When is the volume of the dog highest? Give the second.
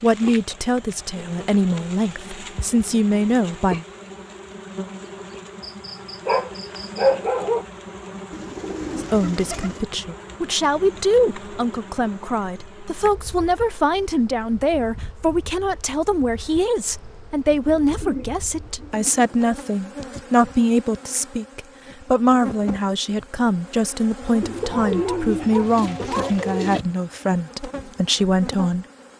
7 s.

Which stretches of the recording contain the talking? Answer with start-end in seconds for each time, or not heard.
0.0-3.9, 8.9-28.9.